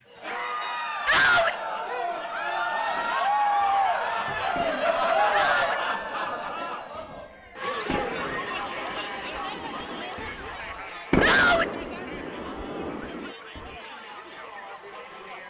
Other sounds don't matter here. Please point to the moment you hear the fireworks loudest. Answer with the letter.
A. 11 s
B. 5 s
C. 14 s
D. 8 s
A.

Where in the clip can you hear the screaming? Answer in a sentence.
You can hear the screaming from 1.1 to 1.6 s, from 5.3 to 5.8 s and from 11.2 to 11.7 s.